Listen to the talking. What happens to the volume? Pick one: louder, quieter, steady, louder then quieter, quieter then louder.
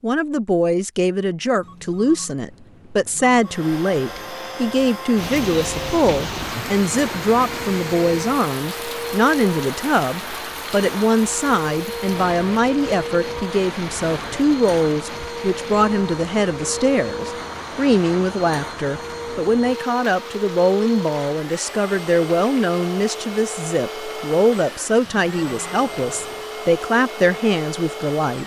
steady.